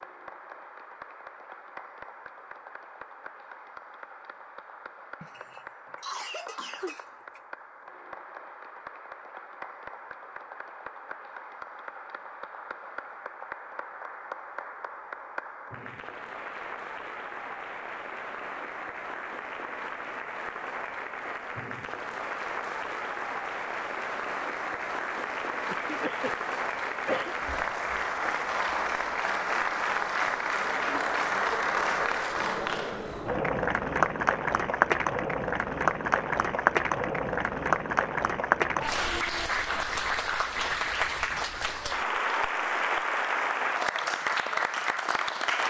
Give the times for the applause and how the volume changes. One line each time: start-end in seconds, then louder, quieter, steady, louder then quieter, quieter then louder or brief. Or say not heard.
0.0-45.6 louder.